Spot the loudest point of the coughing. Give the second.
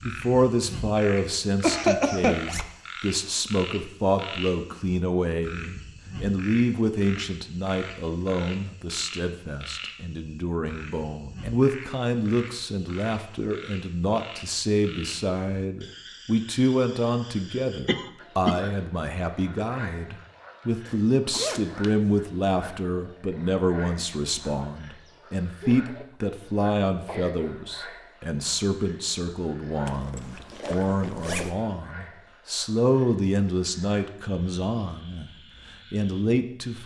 2 s.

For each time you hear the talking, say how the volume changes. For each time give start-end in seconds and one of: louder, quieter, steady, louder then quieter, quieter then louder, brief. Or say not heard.
0.0-35.3 steady
35.9-36.8 brief.